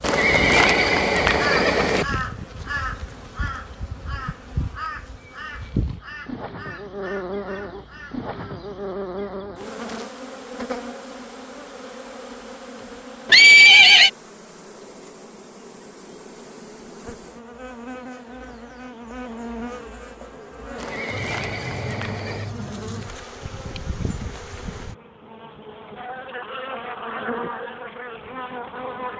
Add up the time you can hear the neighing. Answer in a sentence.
You can hear the neighing for 5 seconds altogether.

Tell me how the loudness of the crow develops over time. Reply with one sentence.
The volume of the crow goes down.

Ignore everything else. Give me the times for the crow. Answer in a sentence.
You can hear the crow from 1.4 to 8.6 s.